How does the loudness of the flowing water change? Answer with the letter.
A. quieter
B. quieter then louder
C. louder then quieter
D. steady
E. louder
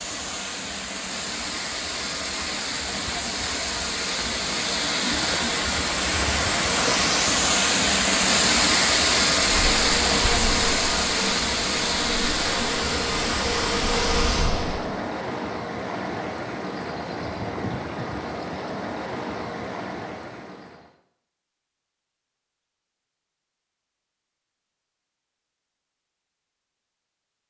C.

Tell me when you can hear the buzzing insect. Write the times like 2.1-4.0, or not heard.
9.5-14.8.